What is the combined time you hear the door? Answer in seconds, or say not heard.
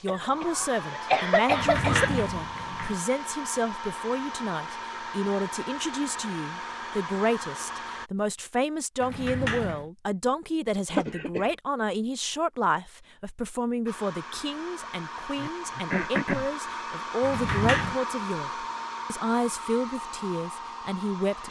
3 s.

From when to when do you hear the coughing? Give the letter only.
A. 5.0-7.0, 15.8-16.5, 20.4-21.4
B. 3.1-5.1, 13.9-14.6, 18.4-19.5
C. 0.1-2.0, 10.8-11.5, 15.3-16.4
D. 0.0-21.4
C.